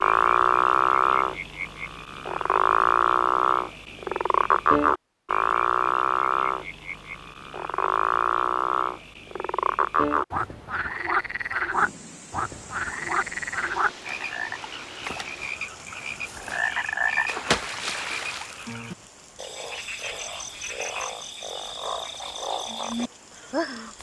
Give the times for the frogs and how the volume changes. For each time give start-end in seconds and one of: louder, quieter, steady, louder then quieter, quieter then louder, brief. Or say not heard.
0.0-23.9 quieter.